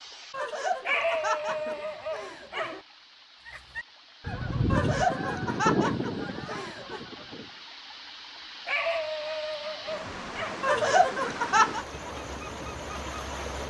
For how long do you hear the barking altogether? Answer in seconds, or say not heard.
4 s.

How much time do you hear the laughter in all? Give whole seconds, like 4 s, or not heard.
6 s.